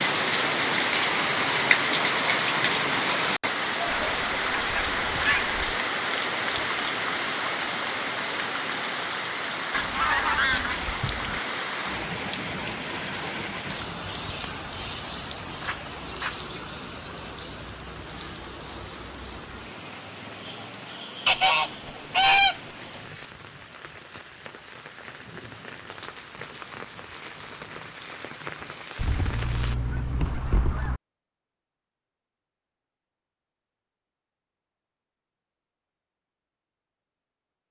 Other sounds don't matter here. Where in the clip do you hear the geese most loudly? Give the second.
22 s.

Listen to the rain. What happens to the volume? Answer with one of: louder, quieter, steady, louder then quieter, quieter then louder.
quieter.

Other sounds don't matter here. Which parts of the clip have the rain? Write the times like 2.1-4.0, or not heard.
0.0-29.8.